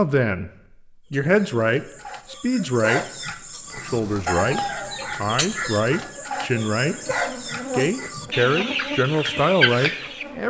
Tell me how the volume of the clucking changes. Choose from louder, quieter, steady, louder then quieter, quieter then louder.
louder.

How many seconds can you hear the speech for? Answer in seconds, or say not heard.
8 s.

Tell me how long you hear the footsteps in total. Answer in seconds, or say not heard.
not heard.